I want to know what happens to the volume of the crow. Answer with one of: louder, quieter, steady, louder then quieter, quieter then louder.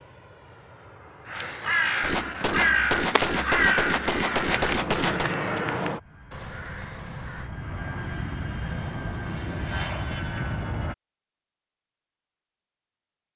quieter.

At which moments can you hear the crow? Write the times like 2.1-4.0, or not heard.
1.2-7.5.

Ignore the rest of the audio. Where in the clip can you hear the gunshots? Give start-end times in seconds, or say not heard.
2.0-5.3.